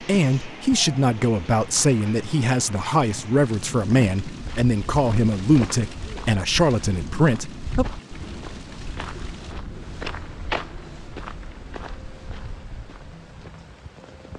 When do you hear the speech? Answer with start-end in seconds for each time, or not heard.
0.0-7.8.